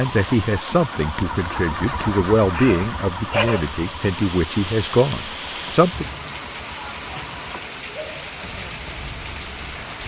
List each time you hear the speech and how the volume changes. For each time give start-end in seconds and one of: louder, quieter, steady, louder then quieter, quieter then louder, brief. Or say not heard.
0.0-6.0 steady.